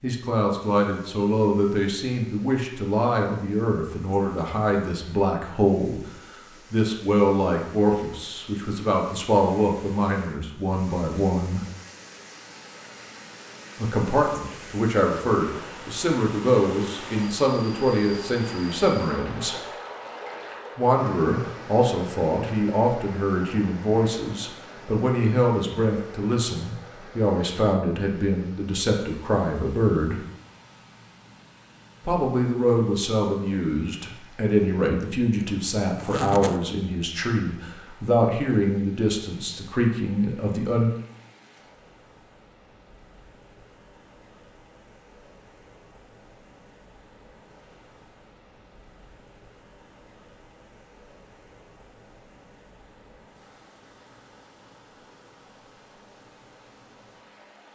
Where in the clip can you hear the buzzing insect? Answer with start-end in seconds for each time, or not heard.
not heard.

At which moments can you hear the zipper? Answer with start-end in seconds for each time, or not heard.
36.0-36.6.